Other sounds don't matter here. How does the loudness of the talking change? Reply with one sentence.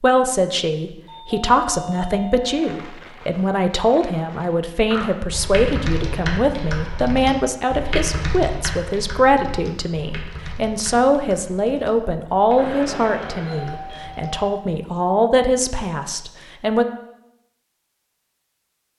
The volume of the talking stays about the same.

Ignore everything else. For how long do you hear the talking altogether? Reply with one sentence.
You can hear the talking for 17 seconds altogether.